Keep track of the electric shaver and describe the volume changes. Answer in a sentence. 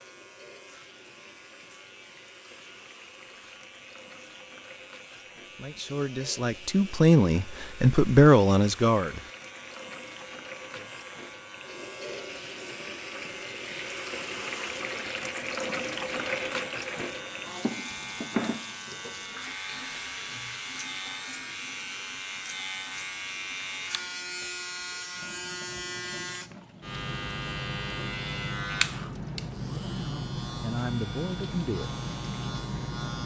The volume of the electric shaver goes up.